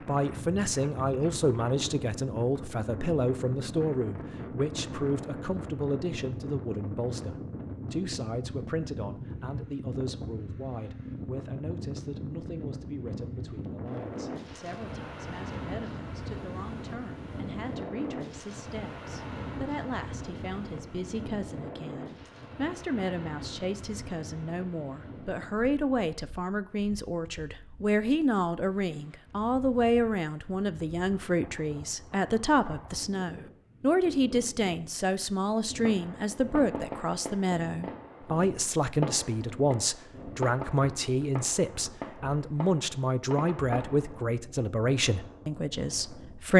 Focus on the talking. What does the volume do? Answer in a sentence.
The loudness of the talking goes down, then up.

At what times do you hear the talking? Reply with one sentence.
You can hear the talking from 0.1 to 46.5 s.